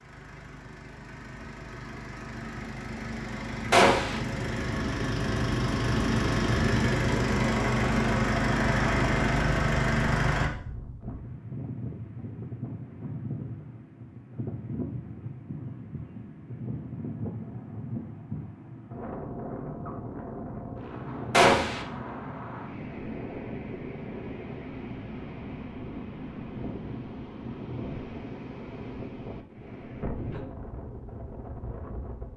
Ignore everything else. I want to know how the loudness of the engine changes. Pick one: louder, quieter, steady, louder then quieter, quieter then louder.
louder.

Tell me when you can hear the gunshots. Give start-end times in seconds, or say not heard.
3.7-4.2, 21.3-21.9.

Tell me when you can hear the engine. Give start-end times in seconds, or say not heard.
0.0-10.5.